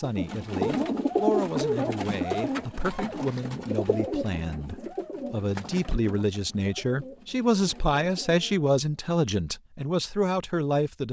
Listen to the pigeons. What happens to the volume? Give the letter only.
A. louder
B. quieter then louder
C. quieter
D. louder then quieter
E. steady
C.